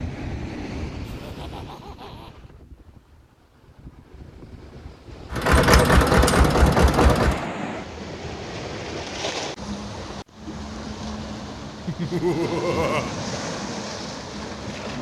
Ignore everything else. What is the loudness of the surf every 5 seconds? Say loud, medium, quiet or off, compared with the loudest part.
medium, loud, loud.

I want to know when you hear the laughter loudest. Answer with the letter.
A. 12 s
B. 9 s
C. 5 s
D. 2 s
A.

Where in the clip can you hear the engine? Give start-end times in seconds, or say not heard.
5.3-7.5.